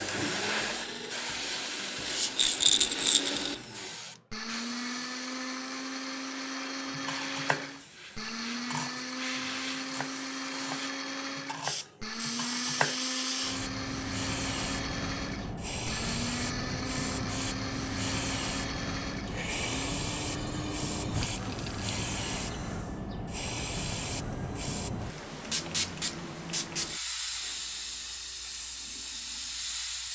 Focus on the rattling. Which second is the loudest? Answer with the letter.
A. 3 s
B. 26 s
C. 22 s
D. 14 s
A.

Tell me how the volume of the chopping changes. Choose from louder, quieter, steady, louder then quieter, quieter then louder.
quieter then louder.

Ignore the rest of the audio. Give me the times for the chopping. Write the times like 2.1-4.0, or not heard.
6.9-12.9.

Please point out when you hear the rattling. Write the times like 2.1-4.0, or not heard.
2.4-3.4, 21.2-21.9.